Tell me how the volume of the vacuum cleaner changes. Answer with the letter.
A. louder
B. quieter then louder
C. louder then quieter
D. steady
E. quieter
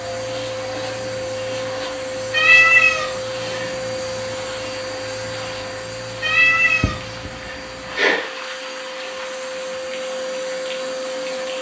B.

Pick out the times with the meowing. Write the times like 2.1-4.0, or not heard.
2.3-3.7, 6.2-8.3.